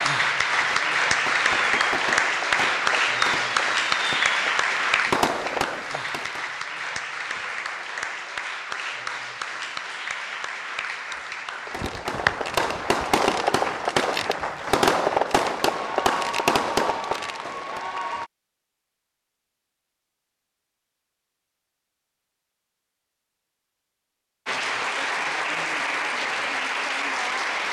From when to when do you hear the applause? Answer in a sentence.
You can hear the applause from 0.0 to 18.3 s and from 24.4 to 27.6 s.